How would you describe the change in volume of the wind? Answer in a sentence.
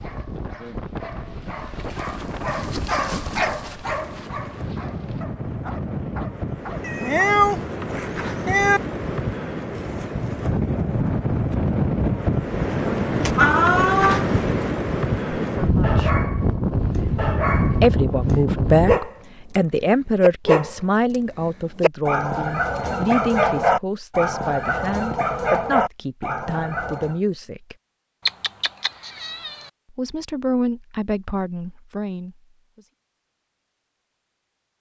The loudness of the wind goes up.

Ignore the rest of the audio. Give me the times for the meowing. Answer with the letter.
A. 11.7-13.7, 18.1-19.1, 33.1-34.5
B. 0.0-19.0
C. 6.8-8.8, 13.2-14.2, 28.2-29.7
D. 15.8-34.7
C.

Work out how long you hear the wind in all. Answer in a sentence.
You can hear the wind for 19 seconds altogether.